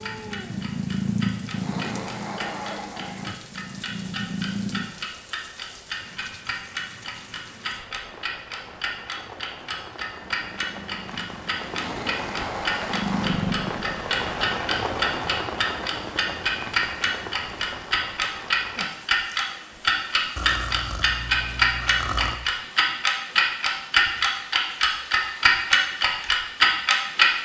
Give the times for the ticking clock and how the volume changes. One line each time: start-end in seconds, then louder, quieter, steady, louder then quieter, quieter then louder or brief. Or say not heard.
0.0-27.4 louder.